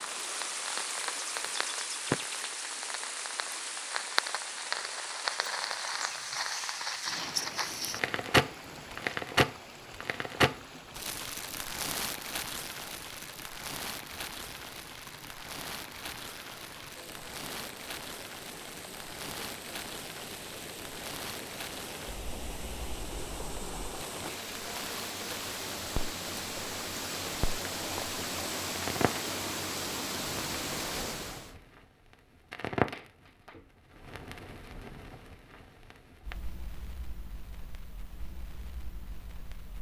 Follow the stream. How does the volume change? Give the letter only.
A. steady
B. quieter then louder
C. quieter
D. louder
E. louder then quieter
B.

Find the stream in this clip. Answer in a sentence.
You can hear the stream from 0.0 to 31.6 s.